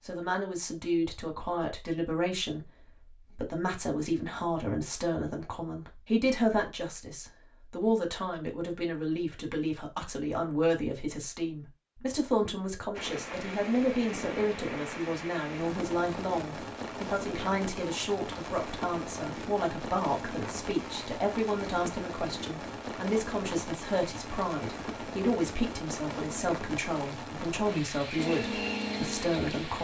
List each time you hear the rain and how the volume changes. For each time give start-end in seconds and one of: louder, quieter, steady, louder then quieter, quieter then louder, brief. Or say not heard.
12.9-29.8 steady.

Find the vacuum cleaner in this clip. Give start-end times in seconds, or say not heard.
28.1-29.8.